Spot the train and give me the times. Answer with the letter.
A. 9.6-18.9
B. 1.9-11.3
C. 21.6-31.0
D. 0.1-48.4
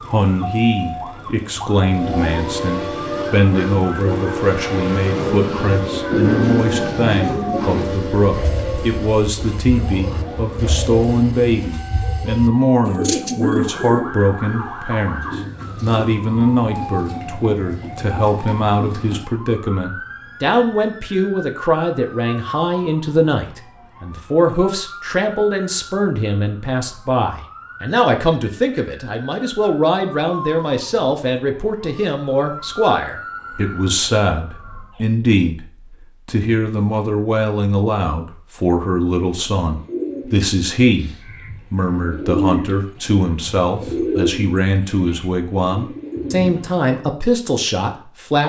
B.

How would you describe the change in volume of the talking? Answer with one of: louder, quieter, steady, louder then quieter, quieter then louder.
steady.